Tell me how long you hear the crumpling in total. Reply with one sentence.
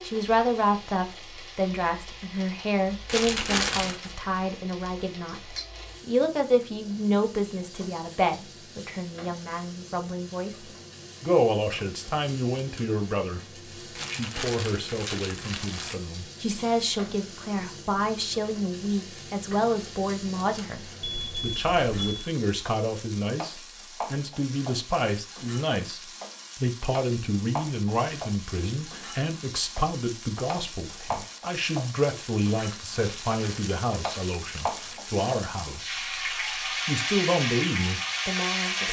The crumpling can be heard for 5 seconds in total.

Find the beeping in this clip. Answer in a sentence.
You can hear the beeping from 21.0 to 22.3 s.